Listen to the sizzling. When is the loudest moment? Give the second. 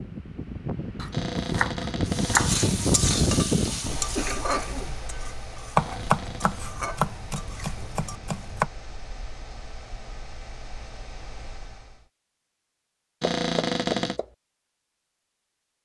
3 s.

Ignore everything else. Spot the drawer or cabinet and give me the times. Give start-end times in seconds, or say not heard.
1.1-2.5, 5.8-6.7, 13.2-14.2.